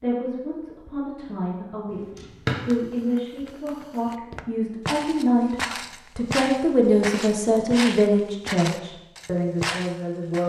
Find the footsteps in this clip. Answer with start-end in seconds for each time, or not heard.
2.5-10.4.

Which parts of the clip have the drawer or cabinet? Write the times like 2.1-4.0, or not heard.
1.9-2.6.